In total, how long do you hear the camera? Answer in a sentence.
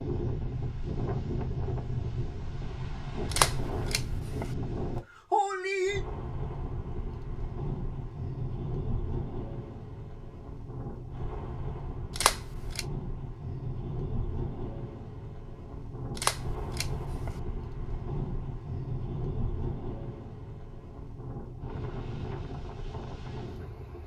The camera can be heard for 3 seconds in total.